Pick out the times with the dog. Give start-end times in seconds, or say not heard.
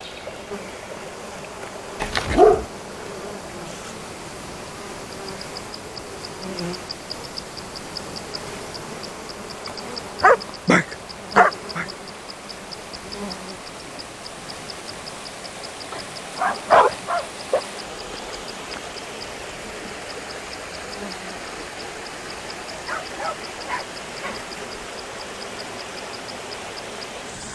2.0-2.6, 10.2-11.8, 15.9-17.6, 22.9-24.4.